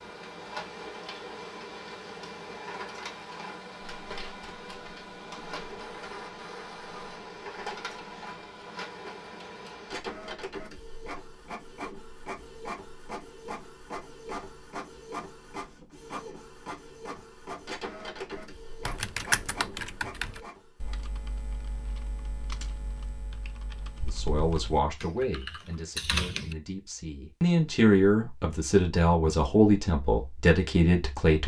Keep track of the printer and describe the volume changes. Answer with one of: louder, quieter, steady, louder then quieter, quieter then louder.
steady.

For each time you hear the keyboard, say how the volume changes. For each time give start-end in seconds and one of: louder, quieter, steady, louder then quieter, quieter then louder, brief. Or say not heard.
18.9-26.6 quieter then louder.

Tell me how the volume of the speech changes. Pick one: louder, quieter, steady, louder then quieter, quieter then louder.
quieter then louder.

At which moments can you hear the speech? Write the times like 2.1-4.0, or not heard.
24.1-31.4.